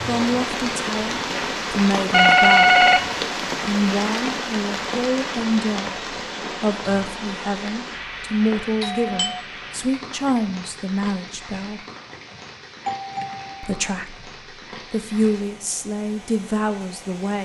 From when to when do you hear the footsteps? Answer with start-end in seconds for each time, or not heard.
not heard.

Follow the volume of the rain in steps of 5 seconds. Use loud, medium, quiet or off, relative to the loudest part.
loud, medium, quiet, quiet.